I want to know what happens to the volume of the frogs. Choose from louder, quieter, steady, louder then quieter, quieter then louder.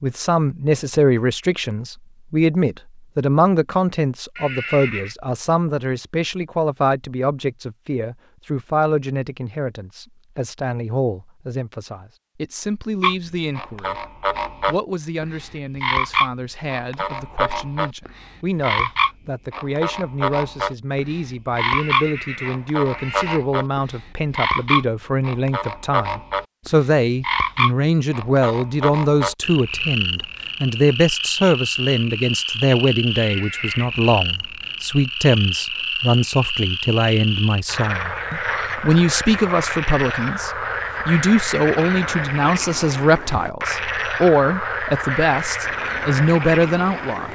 steady.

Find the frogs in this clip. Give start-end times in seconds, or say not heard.
13.0-47.3.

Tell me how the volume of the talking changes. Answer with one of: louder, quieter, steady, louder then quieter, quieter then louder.
quieter then louder.